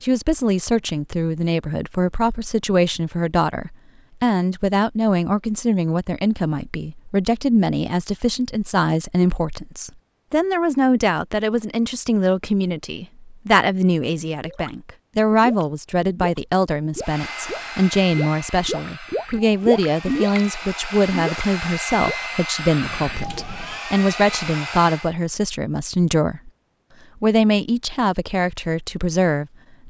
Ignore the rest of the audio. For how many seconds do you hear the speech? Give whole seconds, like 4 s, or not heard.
29 s.